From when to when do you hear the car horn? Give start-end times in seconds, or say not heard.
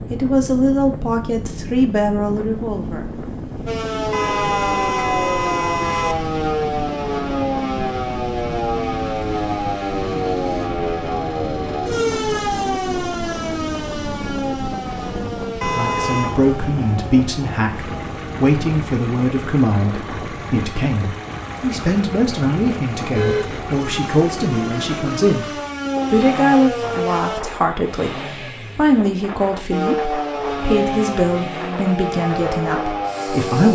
4.1-6.2, 15.6-16.4, 23.1-23.8.